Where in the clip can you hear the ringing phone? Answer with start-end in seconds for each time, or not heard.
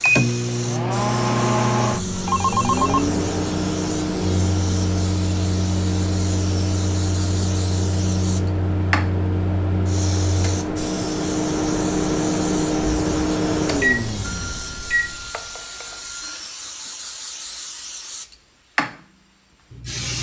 1.9-3.1, 14.2-16.5.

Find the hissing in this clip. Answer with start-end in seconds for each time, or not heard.
0.0-20.1.